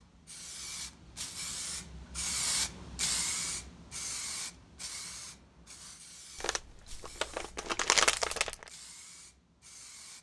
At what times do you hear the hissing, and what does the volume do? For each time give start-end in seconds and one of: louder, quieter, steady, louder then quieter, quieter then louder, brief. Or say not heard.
0.0-10.1 louder then quieter.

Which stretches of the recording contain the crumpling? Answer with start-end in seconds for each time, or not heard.
6.3-8.7.